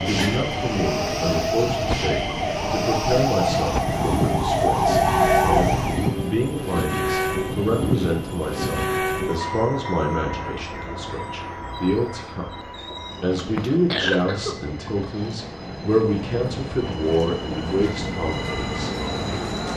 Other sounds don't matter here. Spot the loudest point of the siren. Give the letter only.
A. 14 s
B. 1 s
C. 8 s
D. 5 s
D.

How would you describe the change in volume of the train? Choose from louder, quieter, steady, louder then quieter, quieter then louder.
quieter then louder.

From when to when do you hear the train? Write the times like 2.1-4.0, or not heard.
0.0-19.7.